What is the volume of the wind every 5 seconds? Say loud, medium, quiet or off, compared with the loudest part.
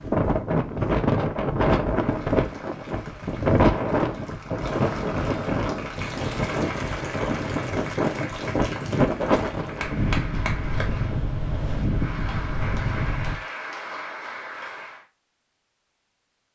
loud, loud, medium, off.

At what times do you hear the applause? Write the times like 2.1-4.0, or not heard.
1.9-15.1.